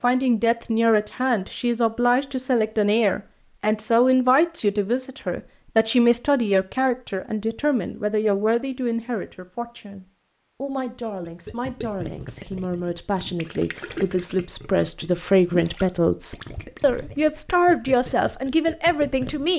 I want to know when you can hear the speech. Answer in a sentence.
You can hear the speech from 0.0 to 19.5 s.